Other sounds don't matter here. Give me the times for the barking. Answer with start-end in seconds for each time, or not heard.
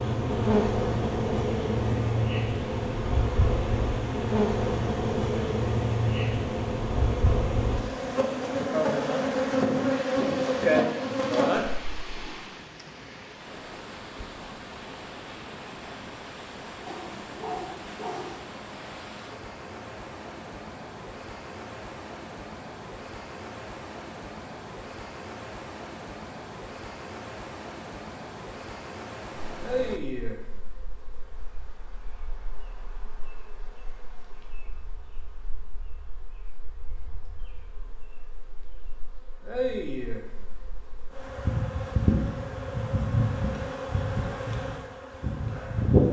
16.9-18.4.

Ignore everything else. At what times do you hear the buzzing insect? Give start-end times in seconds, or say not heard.
0.0-12.1, 29.5-46.0.